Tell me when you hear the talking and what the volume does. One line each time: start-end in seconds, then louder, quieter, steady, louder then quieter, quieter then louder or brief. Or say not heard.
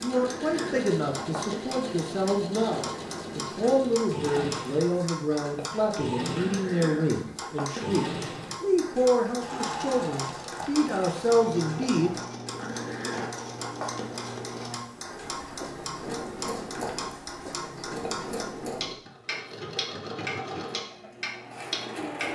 0.0-12.2 steady.